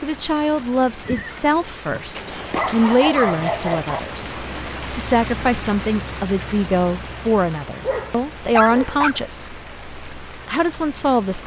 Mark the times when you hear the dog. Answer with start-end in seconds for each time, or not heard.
2.1-4.0, 7.8-9.2.